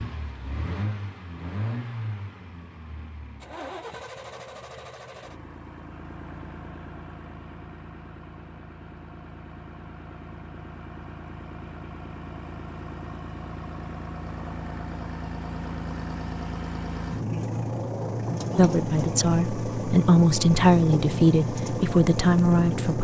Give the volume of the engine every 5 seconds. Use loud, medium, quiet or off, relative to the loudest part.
medium, quiet, medium, loud, loud.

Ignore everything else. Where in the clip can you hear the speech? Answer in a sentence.
The speech can be heard from 18.6 to 22.9 s.